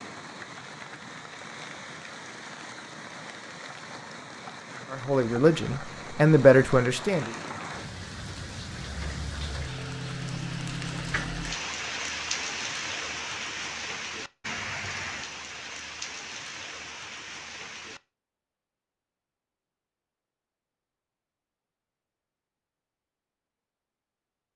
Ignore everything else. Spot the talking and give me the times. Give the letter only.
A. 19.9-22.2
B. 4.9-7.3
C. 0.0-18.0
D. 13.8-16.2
B.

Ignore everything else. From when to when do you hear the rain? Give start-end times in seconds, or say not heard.
0.0-18.0.